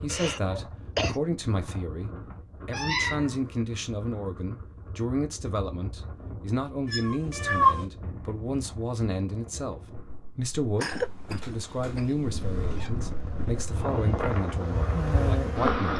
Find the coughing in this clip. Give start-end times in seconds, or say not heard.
0.1-1.2, 10.8-12.2.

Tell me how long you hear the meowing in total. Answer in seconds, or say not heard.
4 s.